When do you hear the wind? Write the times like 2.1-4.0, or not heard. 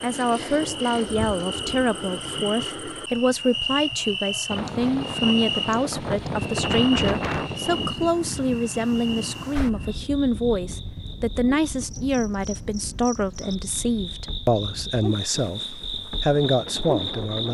4.5-17.4.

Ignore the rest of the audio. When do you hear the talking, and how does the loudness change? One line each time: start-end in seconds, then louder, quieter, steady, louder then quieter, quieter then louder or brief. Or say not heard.
0.0-17.4 steady.